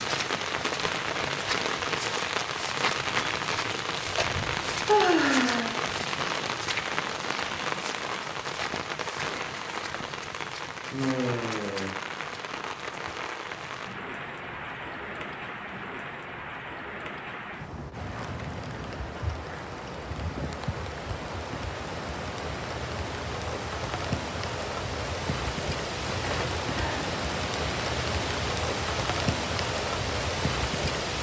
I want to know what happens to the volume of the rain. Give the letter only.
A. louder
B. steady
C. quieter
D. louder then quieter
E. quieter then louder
E.